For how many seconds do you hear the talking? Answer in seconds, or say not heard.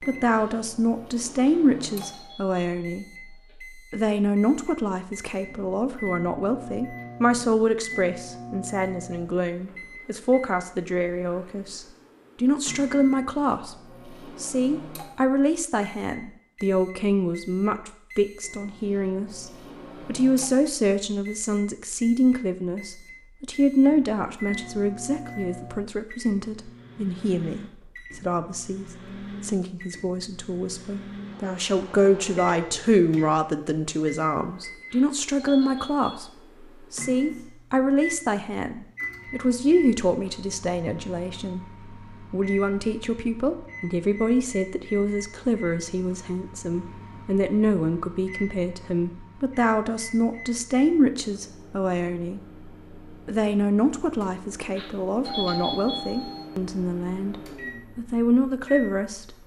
58 s.